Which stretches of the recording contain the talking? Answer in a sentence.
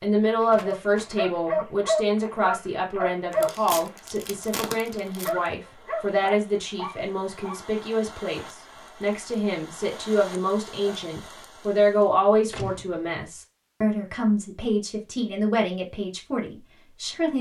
The talking can be heard from 0.0 to 17.3 s.